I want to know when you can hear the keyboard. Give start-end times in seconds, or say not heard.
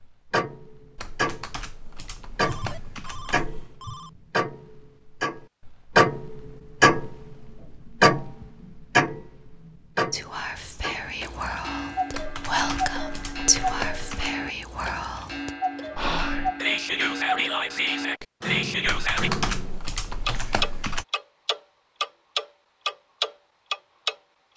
0.9-3.8, 12.1-14.3, 18.9-21.1.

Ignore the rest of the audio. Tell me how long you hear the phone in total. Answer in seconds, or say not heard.
2 s.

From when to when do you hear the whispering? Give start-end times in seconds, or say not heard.
10.1-19.3.